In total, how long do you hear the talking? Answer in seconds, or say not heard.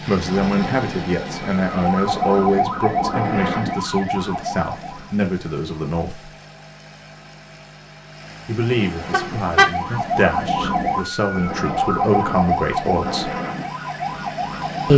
11 s.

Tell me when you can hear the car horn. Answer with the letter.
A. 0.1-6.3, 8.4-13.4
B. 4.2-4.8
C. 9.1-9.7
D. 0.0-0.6
C.